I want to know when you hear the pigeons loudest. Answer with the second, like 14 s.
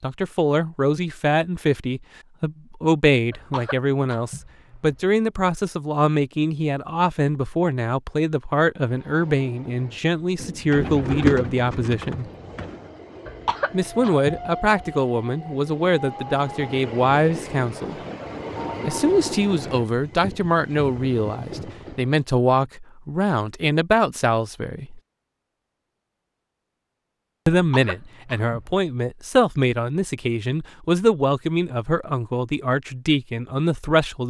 11 s.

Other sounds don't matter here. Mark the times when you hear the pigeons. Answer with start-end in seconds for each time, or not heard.
10.4-12.8.